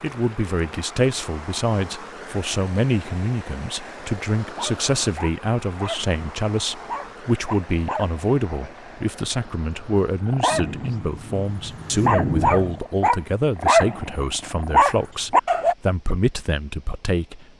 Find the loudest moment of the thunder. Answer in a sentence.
The volume of the thunder peaks at 12 seconds.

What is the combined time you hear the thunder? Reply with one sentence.
The thunder can be heard for 2 seconds in total.